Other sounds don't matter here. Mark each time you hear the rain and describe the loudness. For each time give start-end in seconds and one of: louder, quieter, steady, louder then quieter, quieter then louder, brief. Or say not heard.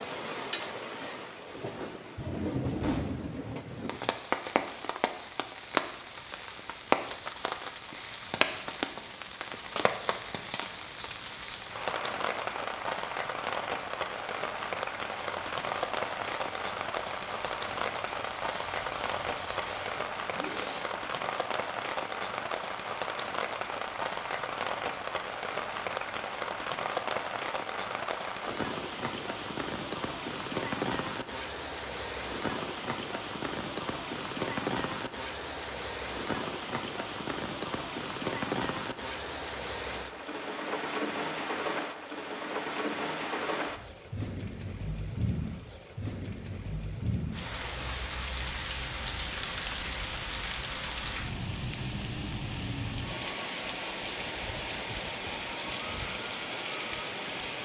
0.0-57.6 steady.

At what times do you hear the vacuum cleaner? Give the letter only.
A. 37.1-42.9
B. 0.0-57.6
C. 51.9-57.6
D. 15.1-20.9
D.